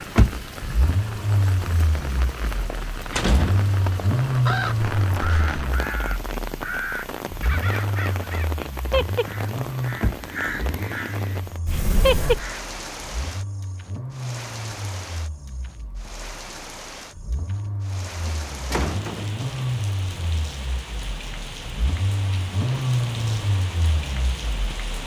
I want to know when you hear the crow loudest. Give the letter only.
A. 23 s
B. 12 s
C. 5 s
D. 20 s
B.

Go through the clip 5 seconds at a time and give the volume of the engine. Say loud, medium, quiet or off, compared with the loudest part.
loud, medium, medium, medium, loud.